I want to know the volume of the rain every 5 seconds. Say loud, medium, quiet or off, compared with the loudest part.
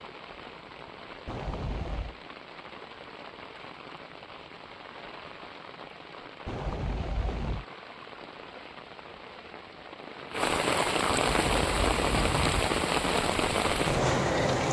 quiet, quiet, loud.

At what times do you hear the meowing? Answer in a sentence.
You can hear the meowing from 1.2 to 2.1 s, from 6.5 to 7.7 s and from 11.1 to 12.7 s.